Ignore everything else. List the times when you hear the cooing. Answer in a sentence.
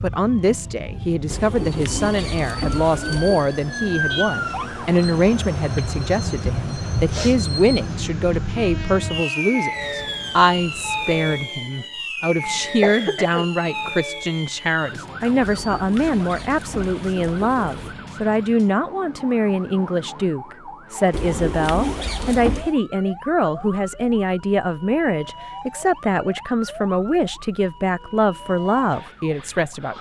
You can hear the cooing from 1.3 to 3.5 s, from 15.4 to 17.9 s and from 21.1 to 22.7 s.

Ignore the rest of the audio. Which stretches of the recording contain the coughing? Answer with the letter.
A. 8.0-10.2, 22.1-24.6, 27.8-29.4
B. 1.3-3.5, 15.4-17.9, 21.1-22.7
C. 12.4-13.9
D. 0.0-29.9
C.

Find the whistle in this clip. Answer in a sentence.
You can't hear the whistle here.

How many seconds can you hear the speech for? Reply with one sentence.
The speech can be heard for 30 seconds in total.